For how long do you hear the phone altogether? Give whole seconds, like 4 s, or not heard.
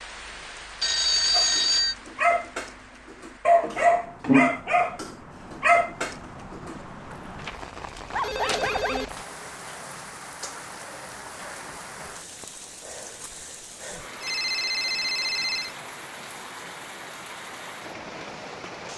4 s.